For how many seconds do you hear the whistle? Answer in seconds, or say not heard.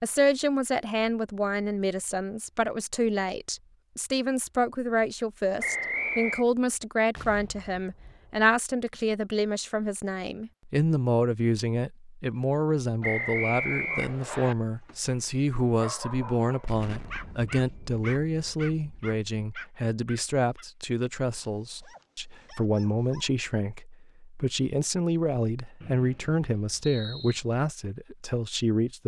4 s.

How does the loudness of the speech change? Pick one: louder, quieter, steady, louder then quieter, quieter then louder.
steady.